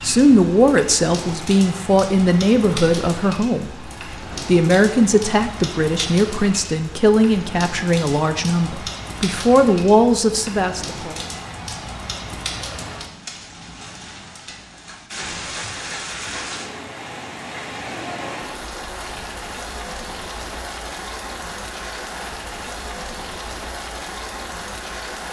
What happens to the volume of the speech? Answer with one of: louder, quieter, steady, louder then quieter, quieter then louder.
steady.